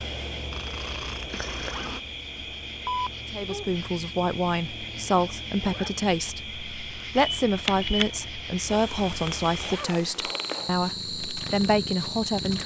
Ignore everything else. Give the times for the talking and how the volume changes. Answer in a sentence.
The talking can be heard from 3.3 to 12.6 s, at a steady volume.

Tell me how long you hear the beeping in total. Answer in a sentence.
You can hear the beeping for 2 seconds altogether.